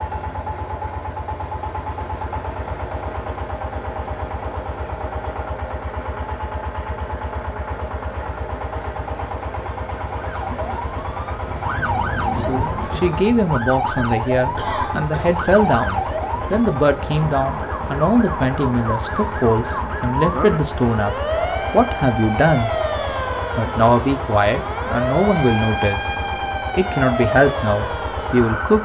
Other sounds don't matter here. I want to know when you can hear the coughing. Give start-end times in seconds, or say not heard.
14.6-15.3.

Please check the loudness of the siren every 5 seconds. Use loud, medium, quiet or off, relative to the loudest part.
off, off, loud, loud, loud, loud.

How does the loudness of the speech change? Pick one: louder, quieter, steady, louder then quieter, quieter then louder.
steady.